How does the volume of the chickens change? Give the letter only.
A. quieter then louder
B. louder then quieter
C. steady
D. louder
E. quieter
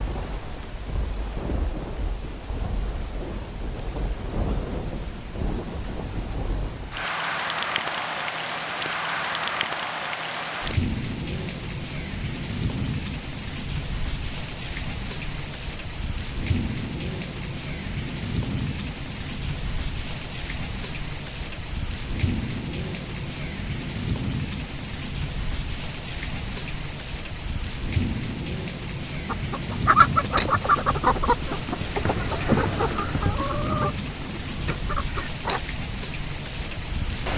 E.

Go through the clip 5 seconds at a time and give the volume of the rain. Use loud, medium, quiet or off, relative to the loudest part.
medium, loud, loud, loud, loud, loud, loud, loud.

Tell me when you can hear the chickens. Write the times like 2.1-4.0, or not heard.
29.2-35.6.